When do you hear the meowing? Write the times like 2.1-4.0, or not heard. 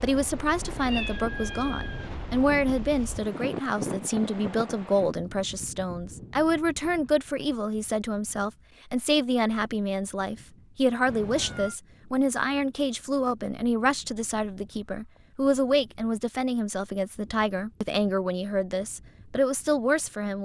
0.8-2.1, 11.1-11.8.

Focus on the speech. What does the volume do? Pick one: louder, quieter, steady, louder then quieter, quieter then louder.
steady.